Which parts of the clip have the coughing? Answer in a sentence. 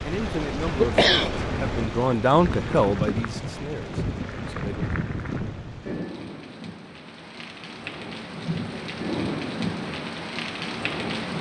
The coughing can be heard from 0.7 to 1.9 s.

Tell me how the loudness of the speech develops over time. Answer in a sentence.
The volume of the speech goes up, then down.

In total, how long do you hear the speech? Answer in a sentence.
The speech can be heard for 5 seconds in total.